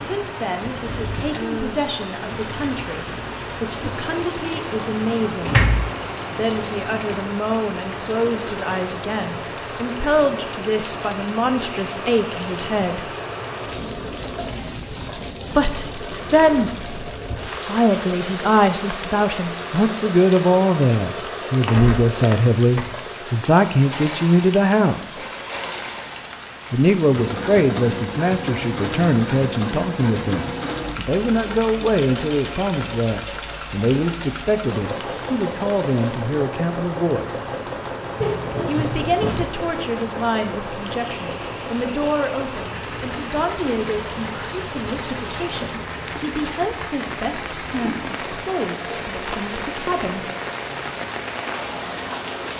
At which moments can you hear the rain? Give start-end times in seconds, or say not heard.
0.0-52.5.